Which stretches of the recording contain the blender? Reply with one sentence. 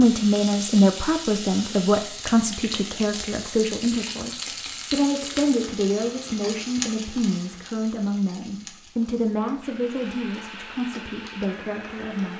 The blender can be heard from 9.6 to 12.3 s.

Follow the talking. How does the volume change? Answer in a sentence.
The loudness of the talking goes down.